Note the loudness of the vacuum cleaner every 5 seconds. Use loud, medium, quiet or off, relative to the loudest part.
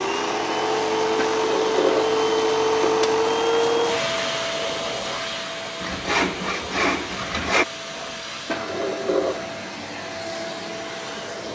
loud, medium, medium.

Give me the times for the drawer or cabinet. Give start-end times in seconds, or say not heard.
1.1-3.1, 8.4-9.5.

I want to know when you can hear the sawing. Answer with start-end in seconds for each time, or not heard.
5.8-7.7.